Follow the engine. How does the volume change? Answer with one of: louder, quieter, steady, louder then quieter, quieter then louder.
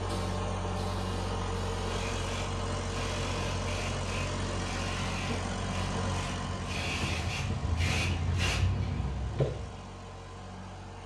quieter.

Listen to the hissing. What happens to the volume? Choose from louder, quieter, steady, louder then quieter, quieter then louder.
louder.